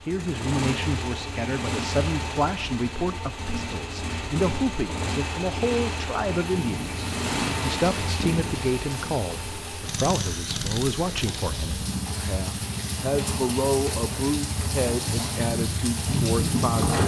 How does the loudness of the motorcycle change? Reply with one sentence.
The loudness of the motorcycle stays about the same.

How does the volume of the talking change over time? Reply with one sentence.
The loudness of the talking stays about the same.